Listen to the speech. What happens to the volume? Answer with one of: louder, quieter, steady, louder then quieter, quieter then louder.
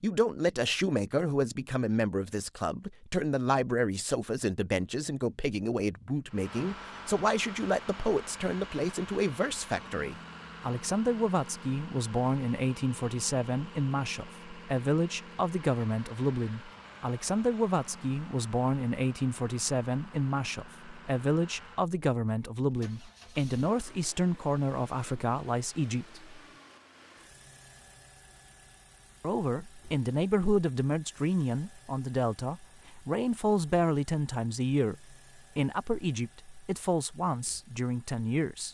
steady.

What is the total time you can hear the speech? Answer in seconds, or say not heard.
36 s.